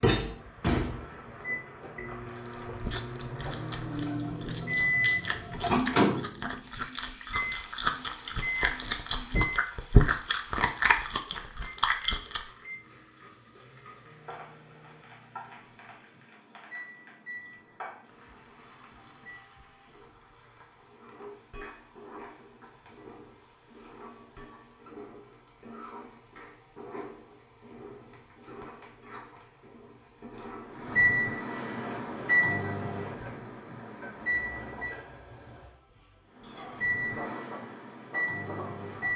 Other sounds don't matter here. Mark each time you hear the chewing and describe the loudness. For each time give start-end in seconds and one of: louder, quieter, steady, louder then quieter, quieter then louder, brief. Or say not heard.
2.4-12.4 louder.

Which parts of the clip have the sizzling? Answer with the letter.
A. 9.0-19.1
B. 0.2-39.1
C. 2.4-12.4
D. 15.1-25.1
B.